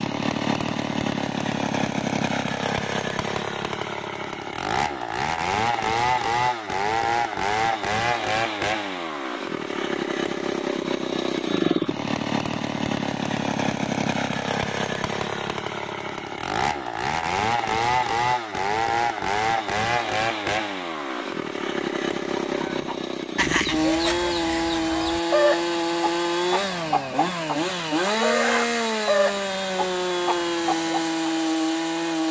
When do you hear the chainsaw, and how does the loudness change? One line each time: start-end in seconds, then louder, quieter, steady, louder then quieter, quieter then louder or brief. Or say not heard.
0.0-32.2 steady.